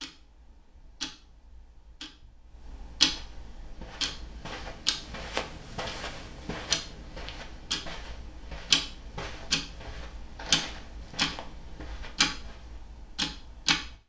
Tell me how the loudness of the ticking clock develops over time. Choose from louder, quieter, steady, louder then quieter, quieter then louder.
louder.